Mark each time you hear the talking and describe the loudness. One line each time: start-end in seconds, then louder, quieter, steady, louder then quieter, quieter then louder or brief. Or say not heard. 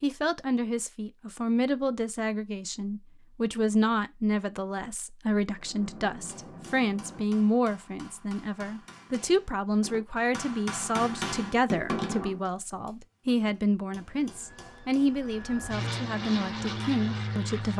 0.0-17.7 steady.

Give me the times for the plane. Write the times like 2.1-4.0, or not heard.
13.9-17.7.